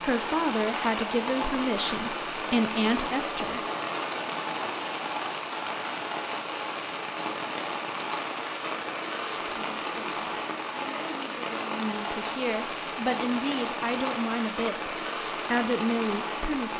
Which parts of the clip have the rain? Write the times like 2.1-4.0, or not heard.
0.0-16.7.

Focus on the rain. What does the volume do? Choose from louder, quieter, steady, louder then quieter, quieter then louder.
steady.